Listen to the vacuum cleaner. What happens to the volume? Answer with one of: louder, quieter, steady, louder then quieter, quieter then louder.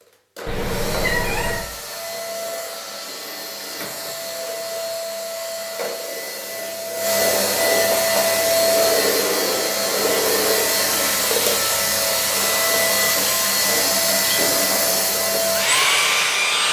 louder.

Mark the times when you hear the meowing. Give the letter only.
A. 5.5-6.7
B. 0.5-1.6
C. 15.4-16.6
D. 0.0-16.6
B.